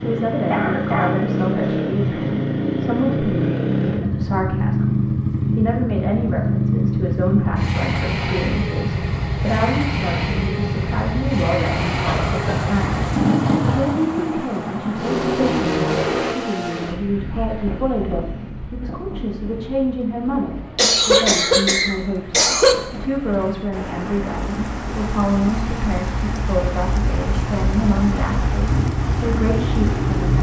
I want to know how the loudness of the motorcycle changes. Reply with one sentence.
The loudness of the motorcycle goes down, then up.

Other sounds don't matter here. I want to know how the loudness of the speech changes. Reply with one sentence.
The loudness of the speech stays about the same.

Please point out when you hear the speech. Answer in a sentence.
The speech can be heard from 0.0 to 30.3 s.